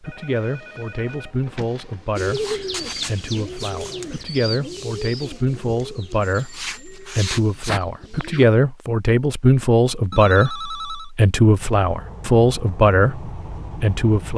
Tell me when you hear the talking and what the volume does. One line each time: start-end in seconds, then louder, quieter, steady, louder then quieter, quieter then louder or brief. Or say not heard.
0.0-14.3 louder.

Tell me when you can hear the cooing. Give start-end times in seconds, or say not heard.
2.1-8.4.